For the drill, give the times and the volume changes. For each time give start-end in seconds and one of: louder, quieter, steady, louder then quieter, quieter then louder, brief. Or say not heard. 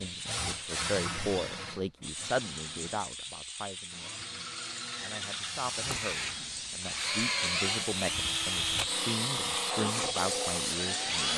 0.0-11.3 quieter then louder.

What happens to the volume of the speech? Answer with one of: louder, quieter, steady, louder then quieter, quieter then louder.
quieter then louder.